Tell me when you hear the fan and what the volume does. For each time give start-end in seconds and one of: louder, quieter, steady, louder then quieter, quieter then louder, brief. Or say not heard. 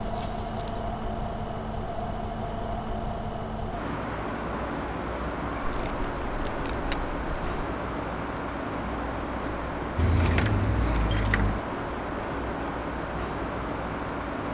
0.0-14.4 steady.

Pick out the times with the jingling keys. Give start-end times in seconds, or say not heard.
0.0-0.8, 5.6-7.7, 9.9-11.7.